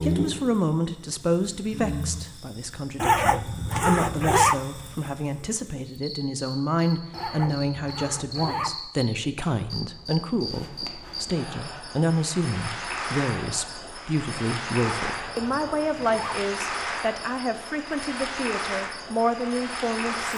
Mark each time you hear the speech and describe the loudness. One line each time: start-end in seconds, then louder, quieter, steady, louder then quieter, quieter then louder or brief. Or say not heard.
0.0-20.3 steady.